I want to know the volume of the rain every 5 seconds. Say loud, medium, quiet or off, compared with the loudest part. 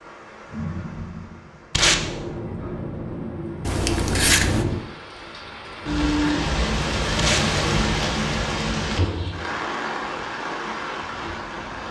medium, loud, medium.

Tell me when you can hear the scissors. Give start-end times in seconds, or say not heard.
3.6-4.7.